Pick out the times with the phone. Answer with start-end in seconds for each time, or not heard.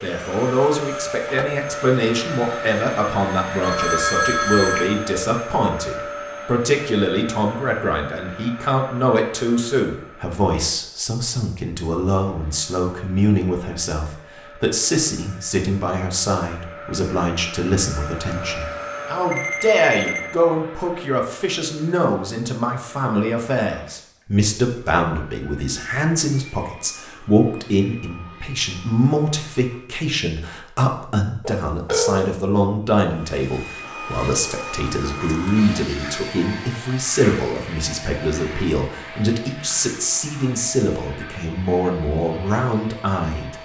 3.6-4.9, 19.3-20.3, 31.4-32.3.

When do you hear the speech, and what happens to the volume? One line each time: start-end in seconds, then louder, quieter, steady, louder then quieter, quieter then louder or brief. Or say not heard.
0.0-43.6 steady.